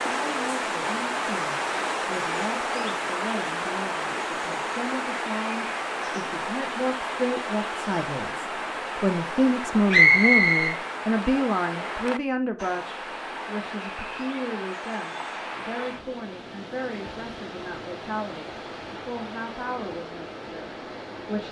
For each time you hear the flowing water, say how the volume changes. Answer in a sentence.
The flowing water can be heard from 0.0 to 21.4 s, getting quieter.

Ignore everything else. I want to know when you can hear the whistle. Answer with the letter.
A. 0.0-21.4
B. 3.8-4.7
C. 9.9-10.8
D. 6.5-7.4
C.